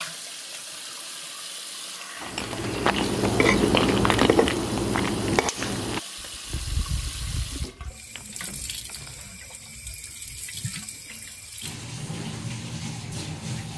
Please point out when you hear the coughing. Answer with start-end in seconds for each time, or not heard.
not heard.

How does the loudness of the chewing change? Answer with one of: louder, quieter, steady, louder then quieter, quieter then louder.
quieter.